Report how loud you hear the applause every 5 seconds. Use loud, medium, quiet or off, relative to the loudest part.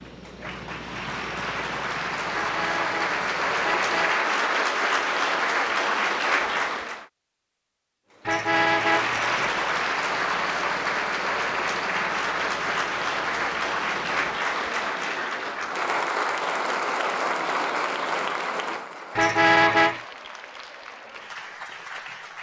loud, loud, loud, loud, quiet.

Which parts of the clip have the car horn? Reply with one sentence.
You can hear the car horn from 2.3 to 4.2 s, from 8.2 to 9.7 s and from 19.1 to 20.0 s.